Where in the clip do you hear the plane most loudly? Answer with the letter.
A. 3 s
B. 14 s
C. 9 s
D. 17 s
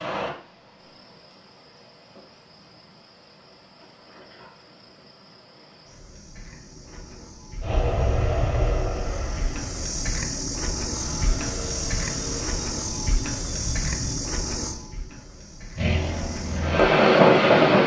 D.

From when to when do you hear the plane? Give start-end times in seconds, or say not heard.
7.6-14.2, 15.8-17.8.